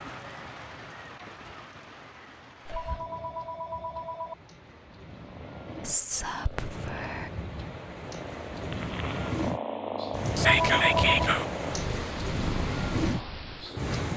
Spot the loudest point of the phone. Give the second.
11 s.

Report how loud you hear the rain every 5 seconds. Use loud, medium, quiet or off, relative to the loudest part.
quiet, medium, loud.